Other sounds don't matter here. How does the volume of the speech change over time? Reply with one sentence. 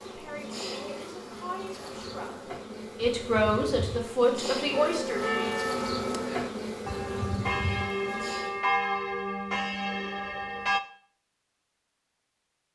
The volume of the speech goes up.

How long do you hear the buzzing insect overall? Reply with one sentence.
You can hear the buzzing insect for 9 seconds altogether.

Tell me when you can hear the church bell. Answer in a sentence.
You can hear the church bell from 4.7 to 10.8 s.